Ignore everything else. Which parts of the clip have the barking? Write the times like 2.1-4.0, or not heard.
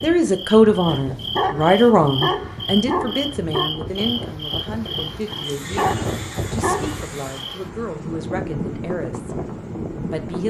0.8-3.7, 5.3-7.0.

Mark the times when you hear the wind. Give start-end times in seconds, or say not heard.
0.0-10.4.